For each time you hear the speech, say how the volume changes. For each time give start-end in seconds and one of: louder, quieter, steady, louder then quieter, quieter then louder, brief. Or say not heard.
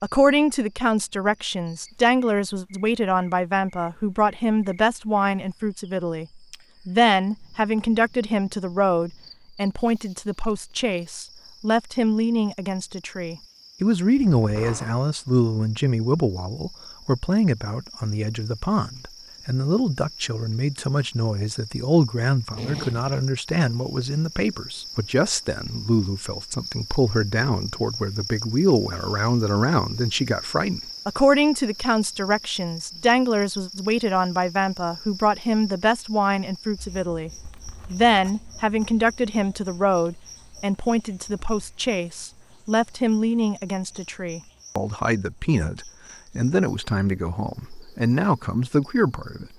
0.0-49.5 steady.